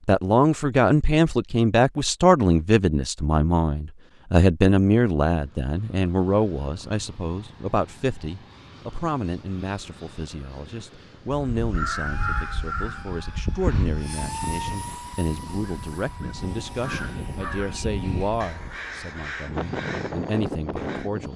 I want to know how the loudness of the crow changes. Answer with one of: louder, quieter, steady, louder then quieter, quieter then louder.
quieter.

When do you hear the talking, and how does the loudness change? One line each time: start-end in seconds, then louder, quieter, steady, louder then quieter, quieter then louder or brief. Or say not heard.
0.1-21.3 quieter.